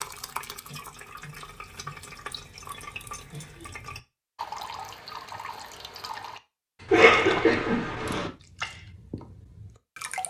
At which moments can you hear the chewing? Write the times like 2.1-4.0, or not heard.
not heard.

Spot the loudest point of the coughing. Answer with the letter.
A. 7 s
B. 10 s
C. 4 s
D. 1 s
A.